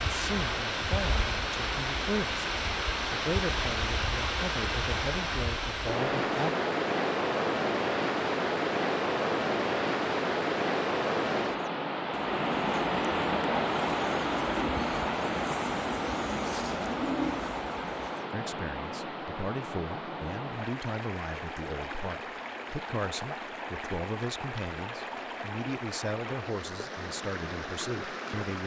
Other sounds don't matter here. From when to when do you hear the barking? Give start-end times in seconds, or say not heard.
not heard.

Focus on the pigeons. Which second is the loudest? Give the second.
17 s.